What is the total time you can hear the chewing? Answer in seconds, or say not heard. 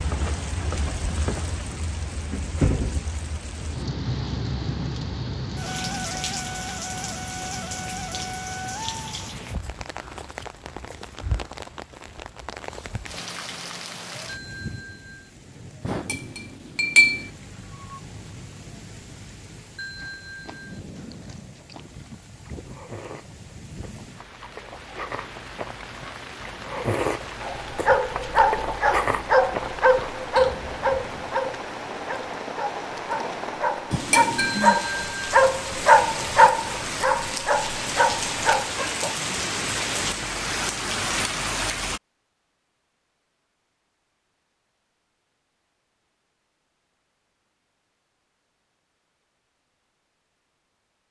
11 s.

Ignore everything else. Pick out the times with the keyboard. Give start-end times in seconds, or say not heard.
not heard.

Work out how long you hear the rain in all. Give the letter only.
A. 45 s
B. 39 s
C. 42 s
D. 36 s
C.